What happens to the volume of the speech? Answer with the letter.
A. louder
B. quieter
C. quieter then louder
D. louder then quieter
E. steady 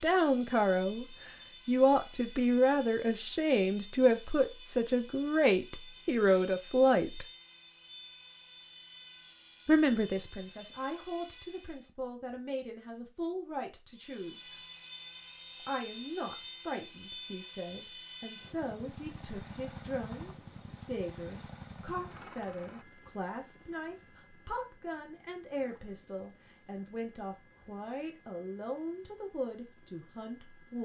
B.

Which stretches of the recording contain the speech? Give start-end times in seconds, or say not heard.
0.0-7.2, 9.7-14.6, 15.6-30.8.